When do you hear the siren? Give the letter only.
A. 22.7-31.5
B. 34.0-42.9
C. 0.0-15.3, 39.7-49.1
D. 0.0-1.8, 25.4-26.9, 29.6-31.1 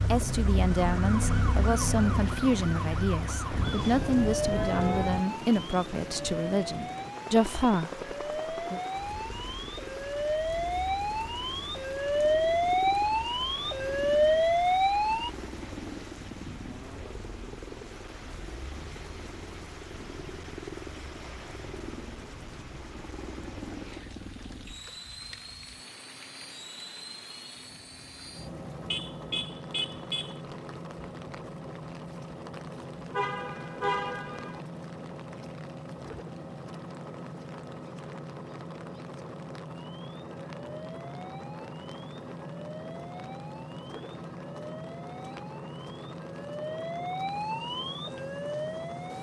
C.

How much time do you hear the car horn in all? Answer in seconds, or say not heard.
5 s.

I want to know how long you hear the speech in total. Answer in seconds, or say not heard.
9 s.